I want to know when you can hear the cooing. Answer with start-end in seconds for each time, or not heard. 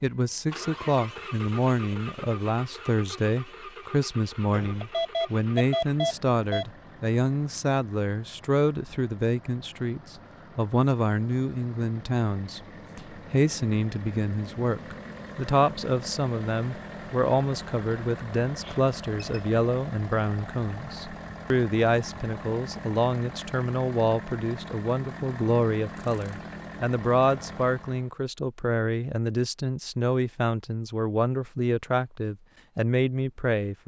not heard.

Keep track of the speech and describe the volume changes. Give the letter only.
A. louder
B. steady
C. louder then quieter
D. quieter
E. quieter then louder
B.